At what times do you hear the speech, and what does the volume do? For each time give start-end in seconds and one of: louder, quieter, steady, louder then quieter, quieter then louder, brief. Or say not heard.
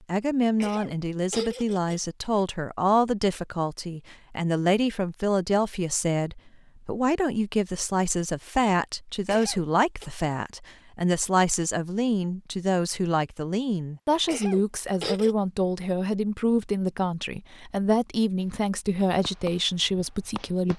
0.1-20.7 steady.